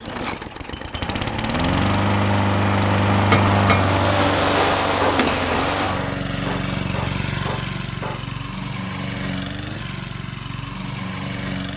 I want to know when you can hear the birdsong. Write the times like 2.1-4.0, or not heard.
not heard.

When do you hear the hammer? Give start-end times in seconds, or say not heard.
3.3-3.9, 4.5-8.4.